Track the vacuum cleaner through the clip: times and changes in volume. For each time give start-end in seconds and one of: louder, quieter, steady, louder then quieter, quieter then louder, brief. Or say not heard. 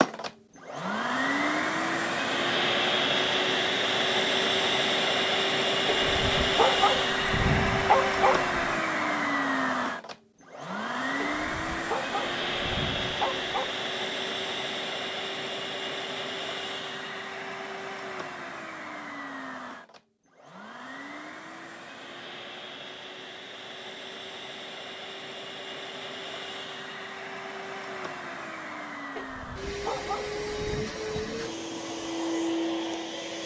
0.0-33.4 quieter then louder.